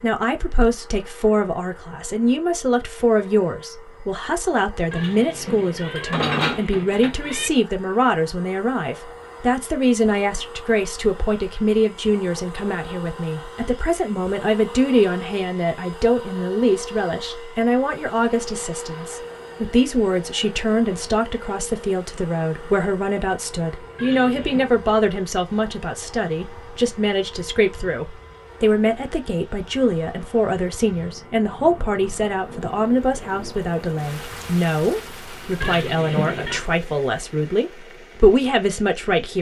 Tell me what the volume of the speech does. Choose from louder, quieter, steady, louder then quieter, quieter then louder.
steady.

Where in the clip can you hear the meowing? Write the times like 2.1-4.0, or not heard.
4.9-7.5, 23.9-24.7, 35.6-36.6.